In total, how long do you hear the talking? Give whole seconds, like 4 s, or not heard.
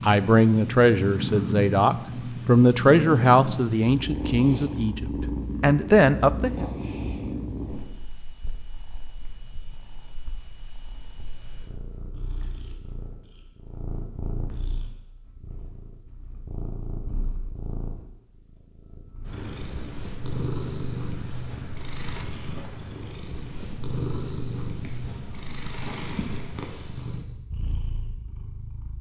7 s.